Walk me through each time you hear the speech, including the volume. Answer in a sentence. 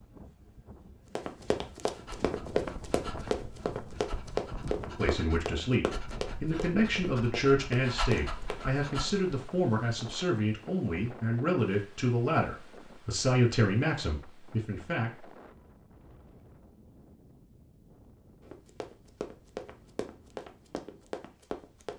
The speech can be heard from 5.0 to 15.3 s, at a steady volume.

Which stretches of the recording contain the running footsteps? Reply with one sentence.
The running footsteps can be heard from 1.1 to 8.8 s and from 18.4 to 21.9 s.